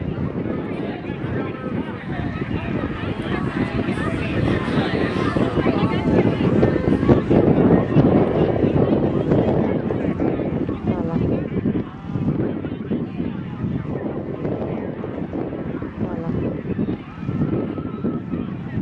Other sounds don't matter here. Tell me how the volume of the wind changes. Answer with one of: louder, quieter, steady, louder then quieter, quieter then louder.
louder then quieter.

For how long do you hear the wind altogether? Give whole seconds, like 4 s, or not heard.
19 s.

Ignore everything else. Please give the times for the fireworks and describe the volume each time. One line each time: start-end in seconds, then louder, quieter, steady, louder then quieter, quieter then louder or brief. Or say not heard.
not heard.